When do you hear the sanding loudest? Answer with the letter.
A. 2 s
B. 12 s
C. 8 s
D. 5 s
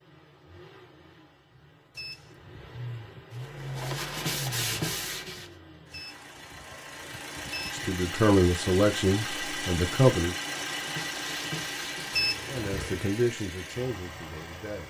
D.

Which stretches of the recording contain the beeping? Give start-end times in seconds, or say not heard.
1.9-3.2, 5.9-7.9, 12.1-13.0.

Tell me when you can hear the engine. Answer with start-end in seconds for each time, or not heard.
0.0-14.8.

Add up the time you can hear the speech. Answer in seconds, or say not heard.
5 s.